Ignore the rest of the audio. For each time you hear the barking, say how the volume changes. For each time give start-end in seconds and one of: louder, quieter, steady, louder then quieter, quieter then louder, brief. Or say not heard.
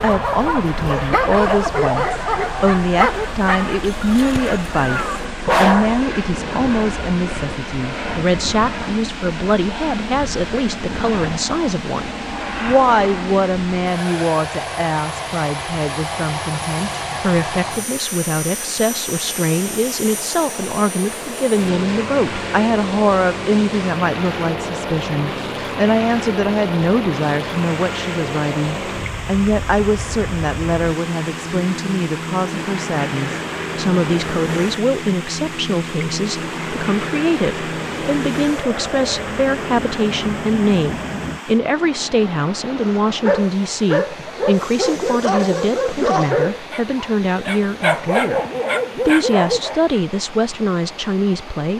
0.0-6.7 quieter then louder
42.8-49.8 steady.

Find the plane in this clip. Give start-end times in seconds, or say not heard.
0.0-41.4.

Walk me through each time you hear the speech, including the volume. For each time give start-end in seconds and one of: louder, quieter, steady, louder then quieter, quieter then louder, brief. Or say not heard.
0.0-48.4 steady
49.0-51.7 brief.